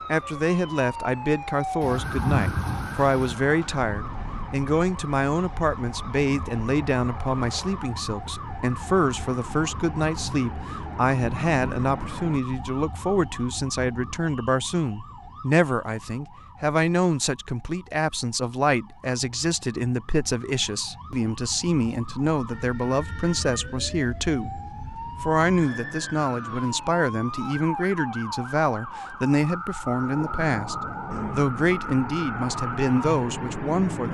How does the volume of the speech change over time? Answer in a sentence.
The loudness of the speech stays about the same.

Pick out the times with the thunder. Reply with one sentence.
The thunder can be heard from 1.8 to 3.4 s and from 29.9 to 31.8 s.